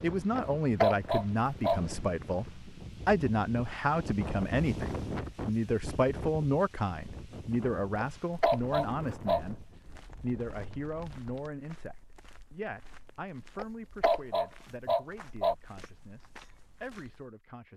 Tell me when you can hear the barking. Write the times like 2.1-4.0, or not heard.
0.3-1.8, 8.0-9.4, 13.6-15.6.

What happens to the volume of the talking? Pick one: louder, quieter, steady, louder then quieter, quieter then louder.
quieter.